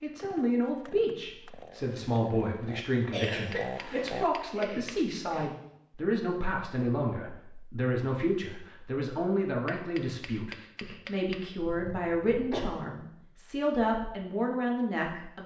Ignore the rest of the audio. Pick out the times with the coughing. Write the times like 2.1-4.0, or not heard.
3.1-5.5, 11.6-12.8.